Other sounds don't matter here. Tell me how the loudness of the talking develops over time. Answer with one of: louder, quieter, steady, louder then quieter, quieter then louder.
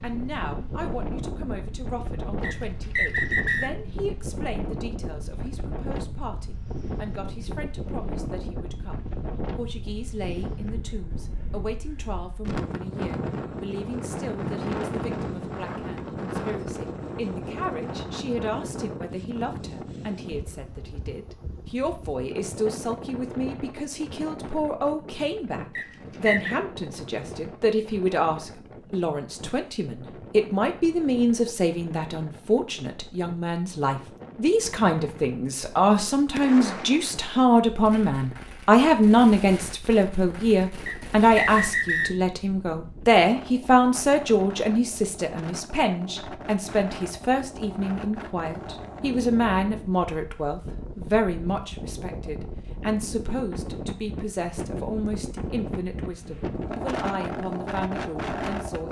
louder then quieter.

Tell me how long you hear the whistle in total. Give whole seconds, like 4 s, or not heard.
3 s.